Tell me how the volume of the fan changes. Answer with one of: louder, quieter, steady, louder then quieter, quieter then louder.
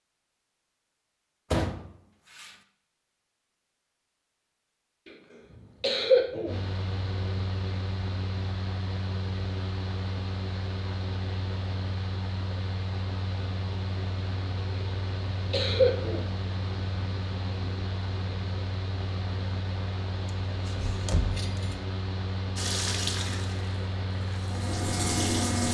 steady.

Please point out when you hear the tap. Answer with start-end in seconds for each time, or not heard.
22.6-25.6.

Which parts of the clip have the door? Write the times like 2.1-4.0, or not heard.
1.5-2.5, 20.2-21.8.